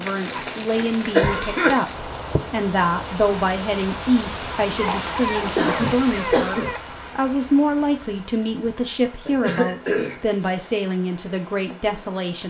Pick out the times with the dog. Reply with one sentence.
You can hear the dog from 4.8 to 6.8 s.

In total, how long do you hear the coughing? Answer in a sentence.
The coughing can be heard for 5 seconds in total.